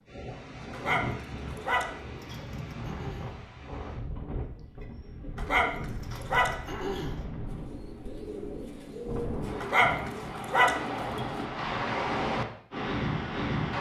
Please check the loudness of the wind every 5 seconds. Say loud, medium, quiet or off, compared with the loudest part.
medium, medium, loud.